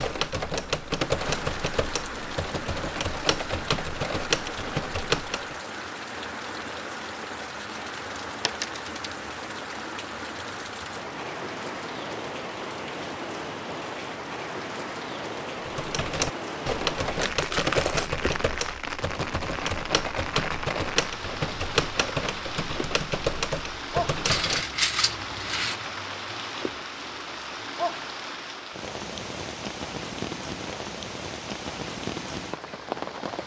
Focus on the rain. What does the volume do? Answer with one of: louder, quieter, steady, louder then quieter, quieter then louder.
steady.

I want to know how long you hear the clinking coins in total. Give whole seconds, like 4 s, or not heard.
4 s.